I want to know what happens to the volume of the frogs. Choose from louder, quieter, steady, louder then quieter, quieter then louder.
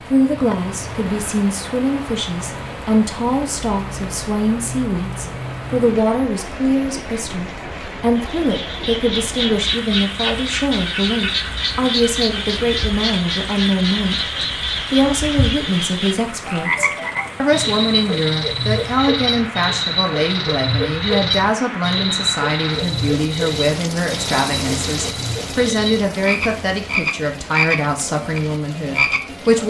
steady.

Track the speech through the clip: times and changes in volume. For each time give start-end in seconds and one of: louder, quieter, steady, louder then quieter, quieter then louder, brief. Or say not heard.
0.1-29.6 steady.